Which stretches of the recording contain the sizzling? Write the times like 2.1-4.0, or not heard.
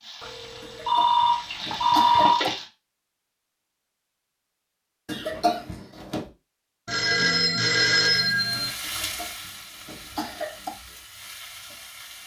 0.0-2.7, 8.1-12.2.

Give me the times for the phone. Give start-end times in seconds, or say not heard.
0.2-2.4, 6.8-8.8.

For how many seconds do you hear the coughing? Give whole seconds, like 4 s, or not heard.
5 s.